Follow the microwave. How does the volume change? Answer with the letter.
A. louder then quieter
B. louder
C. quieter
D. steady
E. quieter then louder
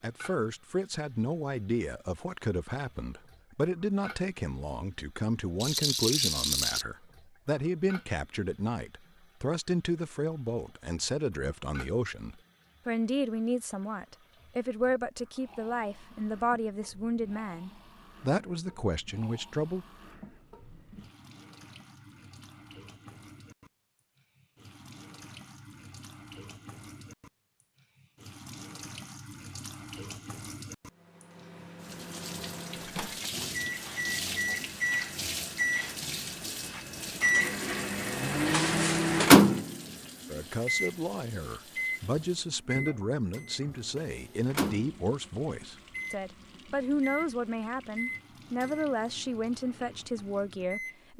A.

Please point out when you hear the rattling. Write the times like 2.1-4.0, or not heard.
5.6-6.8.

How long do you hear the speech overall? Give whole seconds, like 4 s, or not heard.
31 s.